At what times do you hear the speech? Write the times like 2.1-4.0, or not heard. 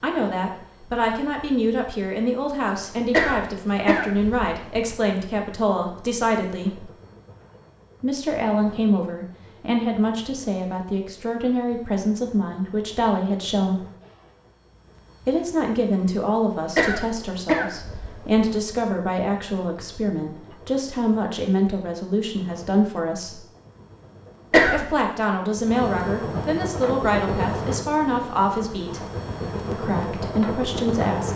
0.0-6.9, 8.0-13.8, 15.2-23.4, 24.7-29.1, 29.7-31.3.